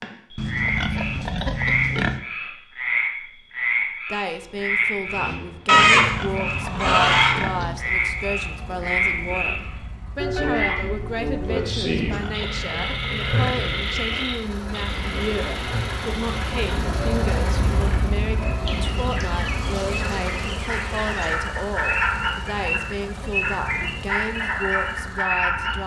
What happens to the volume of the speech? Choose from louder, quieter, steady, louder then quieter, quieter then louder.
steady.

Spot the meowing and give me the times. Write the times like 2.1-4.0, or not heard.
not heard.